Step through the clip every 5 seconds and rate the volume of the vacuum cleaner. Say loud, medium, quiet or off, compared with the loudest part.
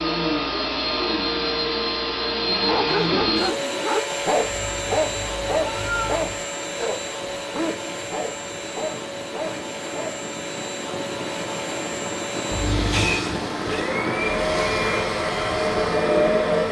loud, medium, medium, loud.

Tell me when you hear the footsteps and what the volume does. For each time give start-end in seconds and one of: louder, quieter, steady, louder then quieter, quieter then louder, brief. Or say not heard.
not heard.